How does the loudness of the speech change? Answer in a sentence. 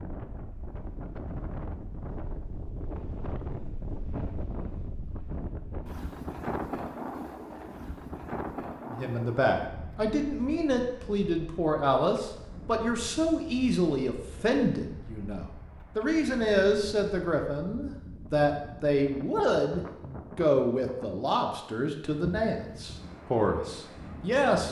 The loudness of the speech stays about the same.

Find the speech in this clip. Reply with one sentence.
You can hear the speech from 8.8 to 24.6 s.